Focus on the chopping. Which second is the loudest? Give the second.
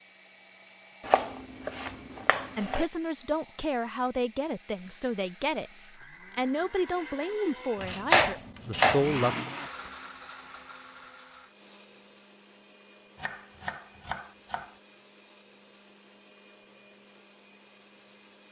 8 s.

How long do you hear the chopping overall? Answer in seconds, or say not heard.
5 s.